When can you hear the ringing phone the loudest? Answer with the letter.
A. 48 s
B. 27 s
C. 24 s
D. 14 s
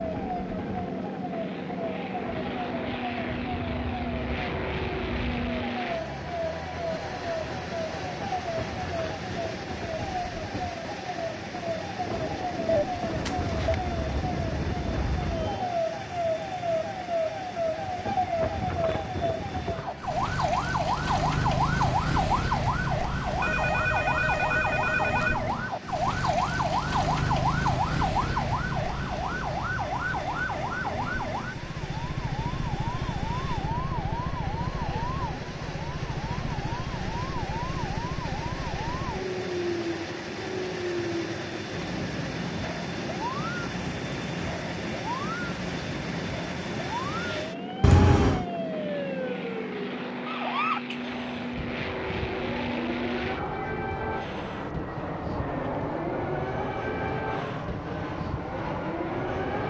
A.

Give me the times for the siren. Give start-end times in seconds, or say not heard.
0.0-59.6.